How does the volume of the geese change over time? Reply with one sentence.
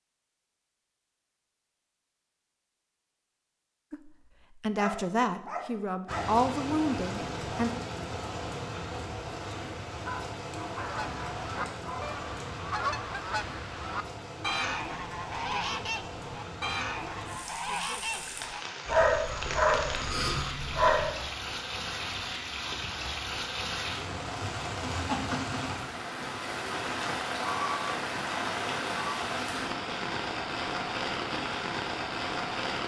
The volume of the geese goes down.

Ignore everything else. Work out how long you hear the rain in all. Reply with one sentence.
You can hear the rain for 27 seconds altogether.